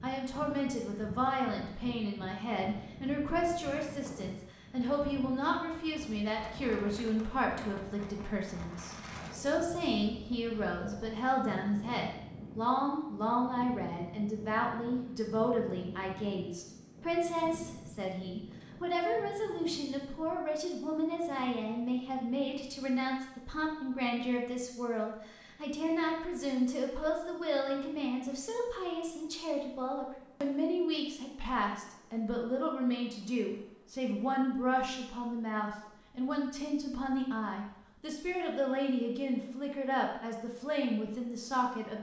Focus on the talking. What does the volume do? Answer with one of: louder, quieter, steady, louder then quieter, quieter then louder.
steady.